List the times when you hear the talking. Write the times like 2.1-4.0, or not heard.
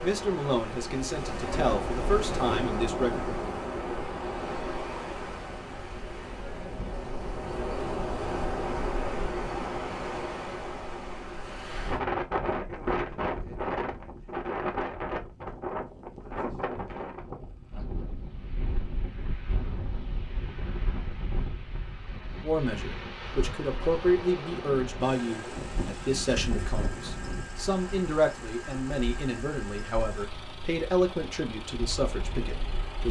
0.0-3.2, 22.4-33.0.